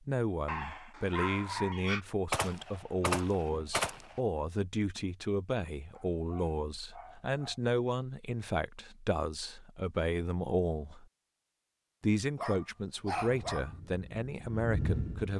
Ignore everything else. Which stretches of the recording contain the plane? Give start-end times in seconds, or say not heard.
13.2-15.3.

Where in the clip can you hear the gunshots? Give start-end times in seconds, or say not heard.
2.3-4.2.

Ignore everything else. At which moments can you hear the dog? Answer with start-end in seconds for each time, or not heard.
0.5-2.0, 5.9-7.6, 12.3-13.7.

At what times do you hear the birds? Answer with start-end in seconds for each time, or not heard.
not heard.